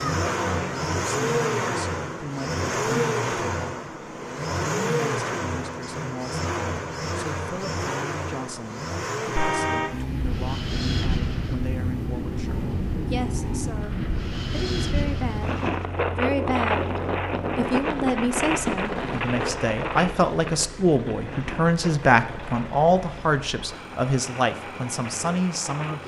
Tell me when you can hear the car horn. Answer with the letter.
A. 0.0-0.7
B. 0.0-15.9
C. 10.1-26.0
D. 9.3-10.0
D.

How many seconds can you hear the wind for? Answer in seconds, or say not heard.
16 s.